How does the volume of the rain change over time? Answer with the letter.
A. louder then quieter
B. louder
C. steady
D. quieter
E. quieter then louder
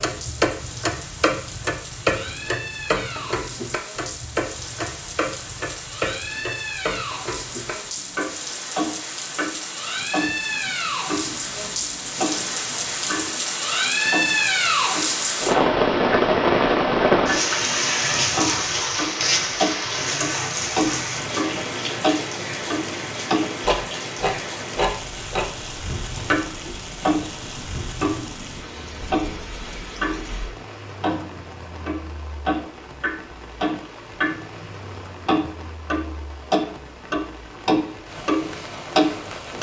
A.